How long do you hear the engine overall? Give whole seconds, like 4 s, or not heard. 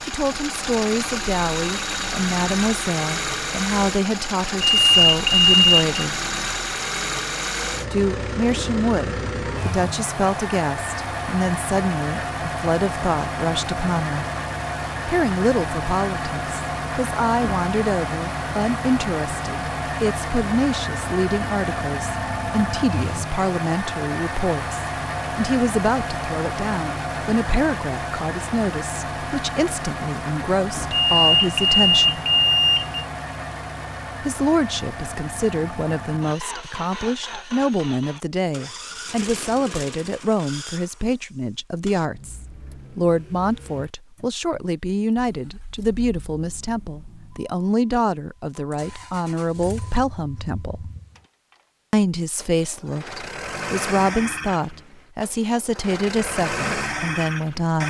58 s.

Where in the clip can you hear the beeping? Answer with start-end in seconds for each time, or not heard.
4.6-5.9, 31.1-33.0.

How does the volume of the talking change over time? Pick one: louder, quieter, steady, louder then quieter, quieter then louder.
steady.